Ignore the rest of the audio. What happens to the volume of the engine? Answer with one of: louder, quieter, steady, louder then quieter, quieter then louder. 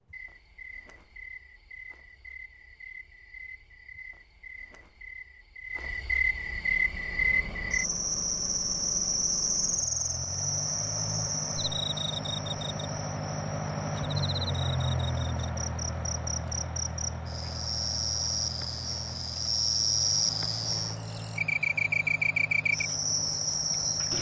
louder then quieter.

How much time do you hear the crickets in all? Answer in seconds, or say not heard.
24 s.